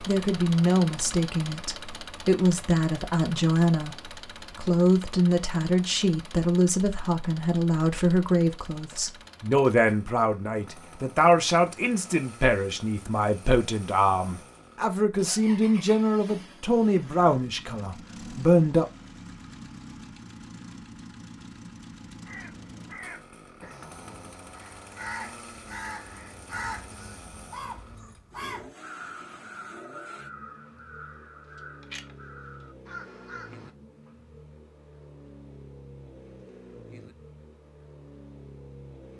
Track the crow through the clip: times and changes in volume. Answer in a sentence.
The crow can be heard from 22.2 to 33.7 s, getting louder then quieter.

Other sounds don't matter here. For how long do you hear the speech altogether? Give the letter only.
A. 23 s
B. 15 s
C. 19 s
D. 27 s
C.